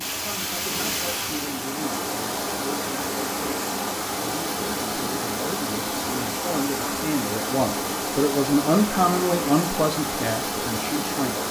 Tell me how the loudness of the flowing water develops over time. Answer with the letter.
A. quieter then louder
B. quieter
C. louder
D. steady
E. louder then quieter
D.